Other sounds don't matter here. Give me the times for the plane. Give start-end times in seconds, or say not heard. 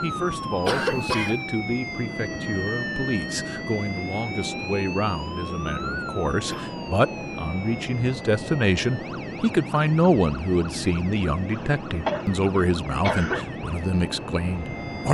0.0-15.0.